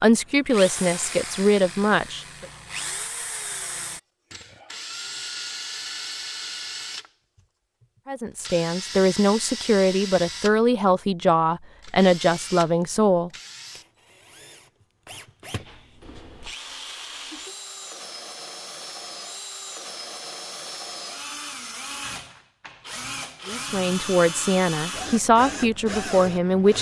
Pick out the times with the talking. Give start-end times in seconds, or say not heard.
0.0-2.5, 8.1-13.3, 23.4-26.7.